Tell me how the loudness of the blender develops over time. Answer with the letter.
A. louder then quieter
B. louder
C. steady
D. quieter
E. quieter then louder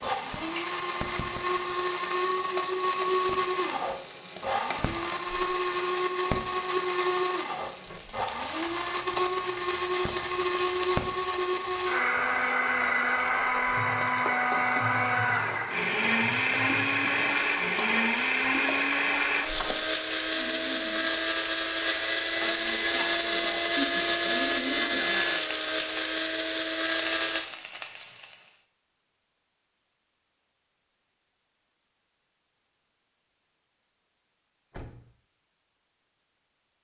C.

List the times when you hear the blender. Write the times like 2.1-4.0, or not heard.
0.0-27.4.